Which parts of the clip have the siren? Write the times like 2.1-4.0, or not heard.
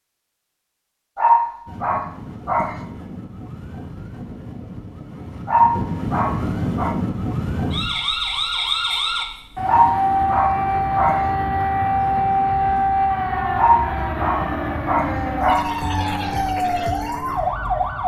1.6-18.0.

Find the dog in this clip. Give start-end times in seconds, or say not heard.
1.1-2.8, 5.5-7.0, 9.7-11.2, 13.6-15.7.